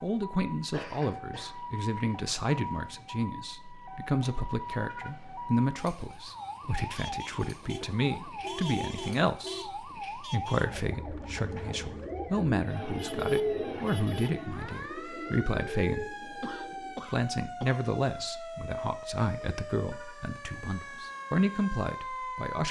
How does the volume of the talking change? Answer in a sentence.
The loudness of the talking stays about the same.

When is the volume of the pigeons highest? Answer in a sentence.
The volume of the pigeons peaks at 13 seconds.